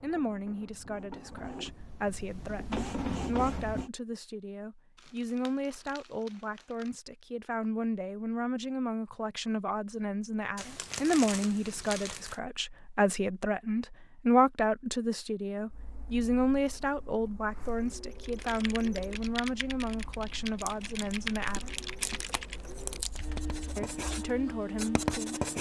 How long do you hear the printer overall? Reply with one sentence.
You can hear the printer for 14 seconds altogether.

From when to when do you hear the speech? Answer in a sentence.
The speech can be heard from 0.0 to 21.9 s and from 23.8 to 25.4 s.